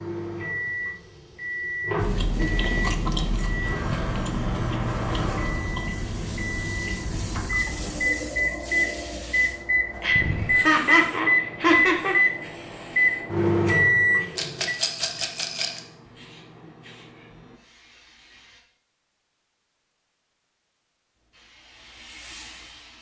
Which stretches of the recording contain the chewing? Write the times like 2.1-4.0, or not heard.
1.9-8.0.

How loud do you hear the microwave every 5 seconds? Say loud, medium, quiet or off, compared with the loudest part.
medium, medium, loud, off, off.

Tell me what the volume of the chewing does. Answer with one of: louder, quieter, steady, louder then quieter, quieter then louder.
quieter.